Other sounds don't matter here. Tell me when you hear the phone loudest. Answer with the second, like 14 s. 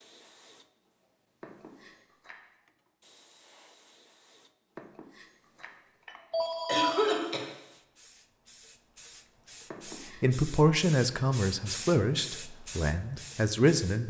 7 s.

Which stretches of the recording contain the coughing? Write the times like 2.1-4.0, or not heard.
6.7-7.5.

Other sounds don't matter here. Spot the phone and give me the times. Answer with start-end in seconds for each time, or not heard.
1.4-2.4, 4.8-7.2, 9.7-10.2.